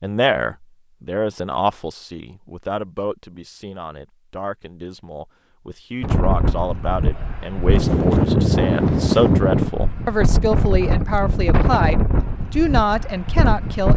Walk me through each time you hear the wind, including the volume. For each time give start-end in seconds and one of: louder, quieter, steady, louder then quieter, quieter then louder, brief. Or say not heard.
6.0-13.9 louder then quieter.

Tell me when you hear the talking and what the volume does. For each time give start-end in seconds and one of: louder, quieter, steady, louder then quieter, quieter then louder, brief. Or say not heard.
0.0-13.9 quieter then louder.